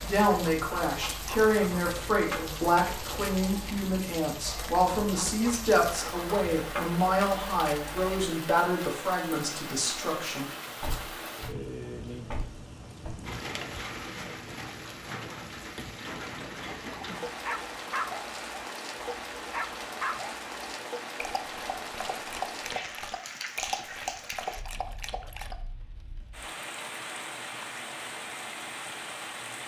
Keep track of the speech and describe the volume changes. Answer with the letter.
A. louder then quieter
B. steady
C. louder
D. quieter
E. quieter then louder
B.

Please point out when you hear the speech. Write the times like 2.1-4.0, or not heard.
0.0-10.5.